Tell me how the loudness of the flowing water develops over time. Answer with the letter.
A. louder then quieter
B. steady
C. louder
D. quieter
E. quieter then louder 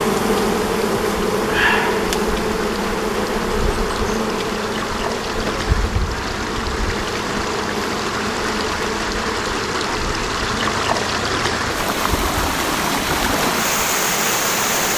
C.